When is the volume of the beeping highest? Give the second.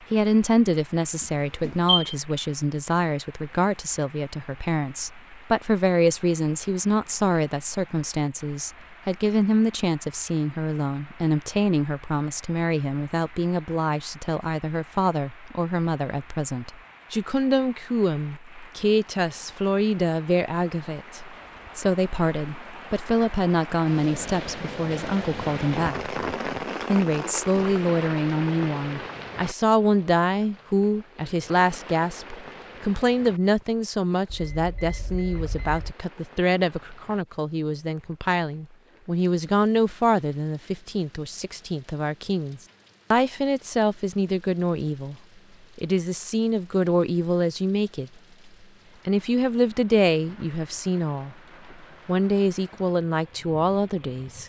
2 s.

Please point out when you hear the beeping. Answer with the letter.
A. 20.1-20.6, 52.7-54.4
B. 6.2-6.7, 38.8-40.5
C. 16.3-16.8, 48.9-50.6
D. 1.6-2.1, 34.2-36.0
D.